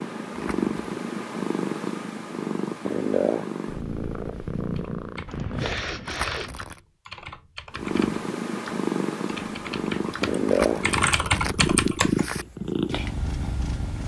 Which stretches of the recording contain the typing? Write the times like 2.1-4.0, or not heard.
4.8-12.3.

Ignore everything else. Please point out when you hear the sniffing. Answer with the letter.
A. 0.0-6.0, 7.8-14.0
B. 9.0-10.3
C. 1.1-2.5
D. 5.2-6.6
D.